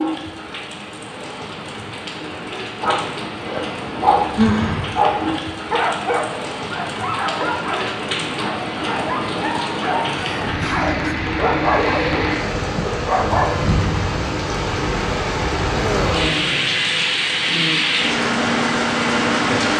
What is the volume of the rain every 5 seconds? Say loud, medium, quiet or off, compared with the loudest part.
medium, medium, loud, loud.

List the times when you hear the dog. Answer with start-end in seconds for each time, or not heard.
2.8-13.6.